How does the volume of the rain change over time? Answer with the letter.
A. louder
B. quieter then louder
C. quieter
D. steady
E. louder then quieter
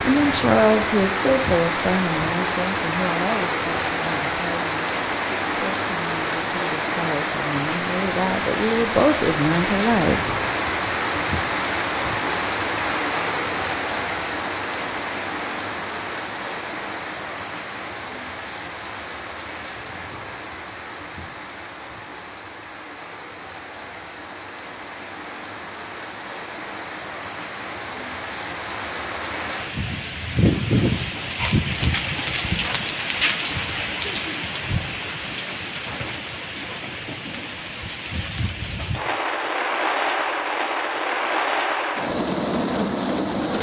B.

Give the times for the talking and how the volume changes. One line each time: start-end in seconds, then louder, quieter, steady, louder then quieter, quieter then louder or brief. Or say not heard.
0.0-10.2 quieter then louder.